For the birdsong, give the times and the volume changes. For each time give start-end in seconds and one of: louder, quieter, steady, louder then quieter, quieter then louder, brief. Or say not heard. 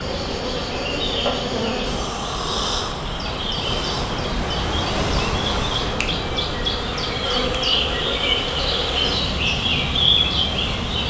0.0-11.0 louder.